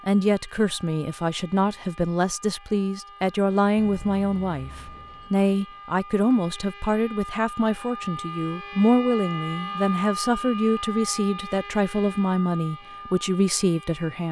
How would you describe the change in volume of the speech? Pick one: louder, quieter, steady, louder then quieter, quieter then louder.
steady.